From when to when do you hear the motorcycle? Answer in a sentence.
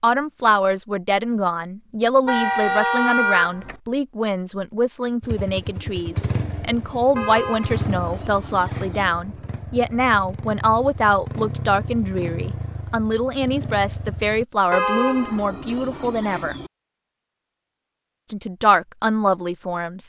The motorcycle can be heard from 5.2 to 14.4 s.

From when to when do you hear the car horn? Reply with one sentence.
You can hear the car horn from 2.2 to 3.8 s, from 7.2 to 9.1 s and from 14.7 to 16.7 s.